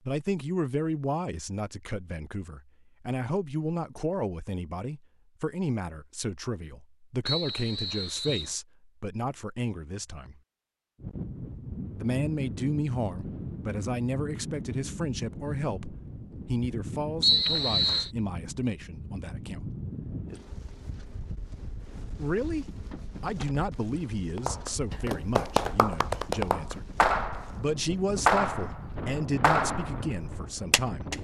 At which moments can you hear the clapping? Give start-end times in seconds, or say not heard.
24.4-31.1.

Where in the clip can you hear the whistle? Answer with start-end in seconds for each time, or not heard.
7.2-8.6, 17.2-18.1.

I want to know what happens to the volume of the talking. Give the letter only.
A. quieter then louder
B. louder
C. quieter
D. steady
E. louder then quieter
D.